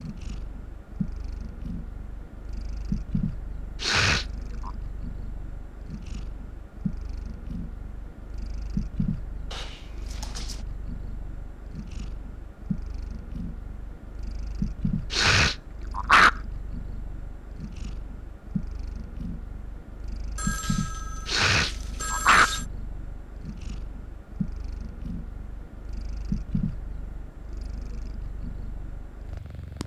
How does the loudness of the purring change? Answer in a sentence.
The volume of the purring stays about the same.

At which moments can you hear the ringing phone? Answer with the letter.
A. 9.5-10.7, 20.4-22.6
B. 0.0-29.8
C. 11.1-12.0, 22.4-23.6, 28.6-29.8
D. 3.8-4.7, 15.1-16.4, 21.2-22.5
A.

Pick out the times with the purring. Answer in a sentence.
The purring can be heard from 0.0 to 29.8 s.